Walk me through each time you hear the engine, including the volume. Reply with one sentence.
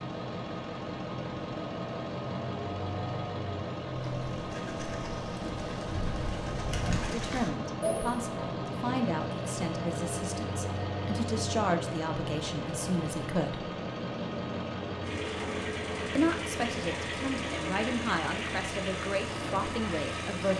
You can hear the engine from 0.0 to 20.5 s, at a steady volume.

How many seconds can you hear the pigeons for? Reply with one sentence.
You can hear the pigeons for 4 seconds altogether.